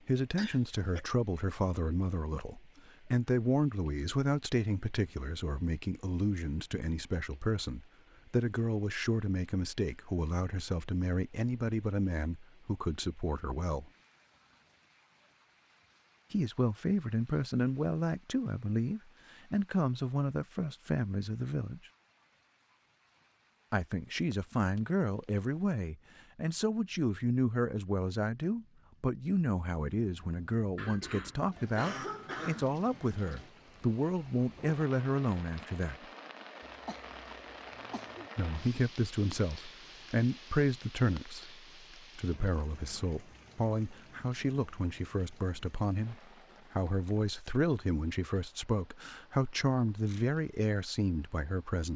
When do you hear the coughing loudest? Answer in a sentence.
The volume of the coughing peaks at 32 seconds.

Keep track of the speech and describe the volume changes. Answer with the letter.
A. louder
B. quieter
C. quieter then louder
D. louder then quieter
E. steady
E.